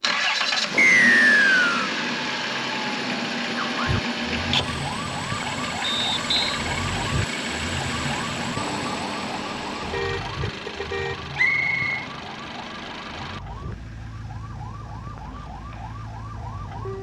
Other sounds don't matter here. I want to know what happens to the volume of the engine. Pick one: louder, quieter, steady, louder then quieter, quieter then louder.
quieter.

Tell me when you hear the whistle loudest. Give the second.
1 s.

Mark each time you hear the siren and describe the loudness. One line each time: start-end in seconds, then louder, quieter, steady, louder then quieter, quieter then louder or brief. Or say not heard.
3.5-16.9 quieter.